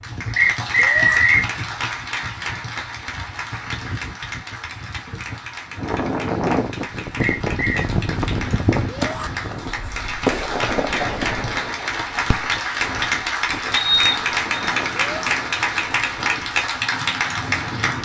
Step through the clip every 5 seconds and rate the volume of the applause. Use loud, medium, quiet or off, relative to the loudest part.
medium, medium, loud, loud.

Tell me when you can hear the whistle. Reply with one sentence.
You can hear the whistle from 0.3 to 1.4 s, from 7.2 to 7.8 s and from 13.7 to 14.5 s.